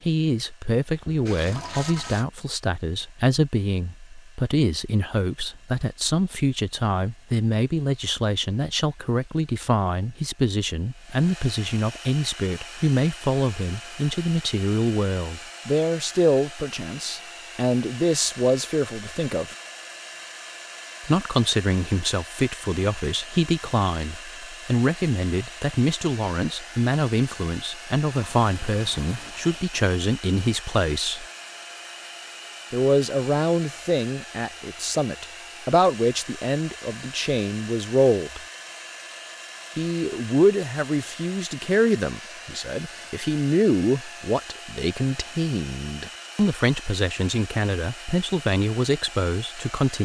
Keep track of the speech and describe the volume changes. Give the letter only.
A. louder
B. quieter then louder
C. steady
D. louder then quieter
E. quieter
C.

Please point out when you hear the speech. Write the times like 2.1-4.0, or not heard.
0.1-19.6, 21.1-31.2, 32.7-38.4, 39.8-49.9.